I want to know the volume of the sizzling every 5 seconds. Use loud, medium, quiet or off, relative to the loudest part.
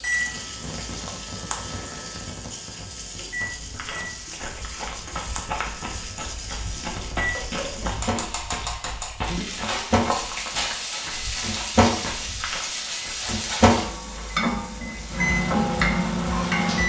medium, medium, loud, loud.